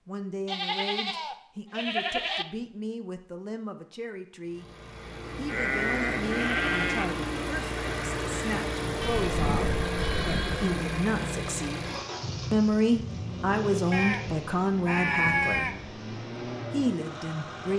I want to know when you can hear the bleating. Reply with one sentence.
The bleating can be heard from 0.5 to 2.5 s, from 5.5 to 7.2 s, from 9.0 to 10.8 s and from 13.9 to 15.9 s.